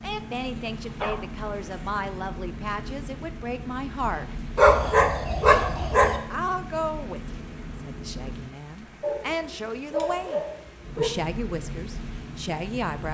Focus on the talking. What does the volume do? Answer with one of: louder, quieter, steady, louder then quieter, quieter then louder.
steady.